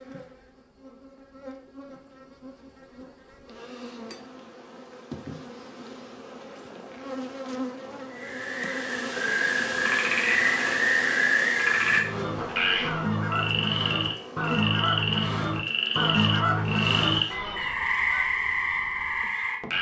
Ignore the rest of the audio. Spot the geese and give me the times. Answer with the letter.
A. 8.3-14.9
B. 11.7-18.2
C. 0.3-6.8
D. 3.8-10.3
B.